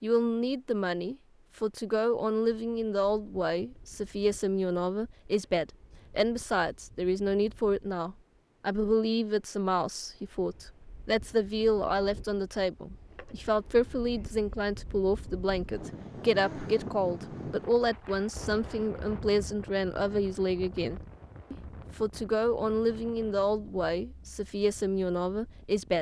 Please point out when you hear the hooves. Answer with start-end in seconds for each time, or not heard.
not heard.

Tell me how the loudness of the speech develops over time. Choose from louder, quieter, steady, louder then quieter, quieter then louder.
steady.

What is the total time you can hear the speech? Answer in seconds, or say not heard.
26 s.